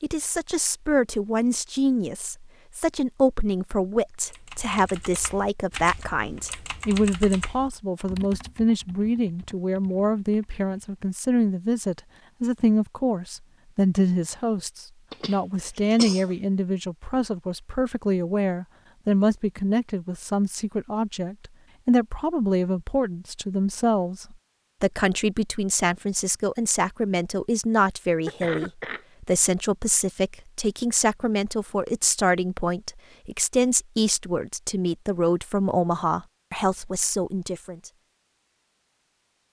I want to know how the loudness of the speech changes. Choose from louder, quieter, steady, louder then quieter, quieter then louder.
steady.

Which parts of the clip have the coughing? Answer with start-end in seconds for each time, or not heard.
15.1-16.3, 28.2-29.4.